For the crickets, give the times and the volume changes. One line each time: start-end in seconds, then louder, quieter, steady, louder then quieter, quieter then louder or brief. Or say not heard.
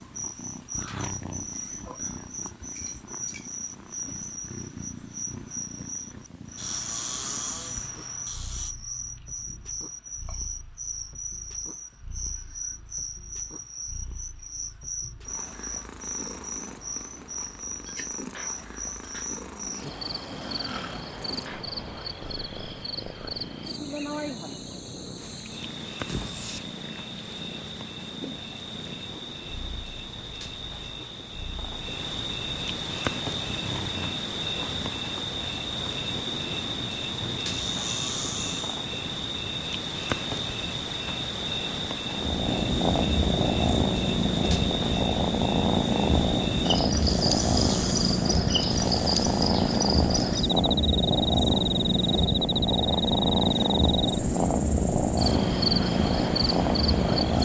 0.0-57.3 louder.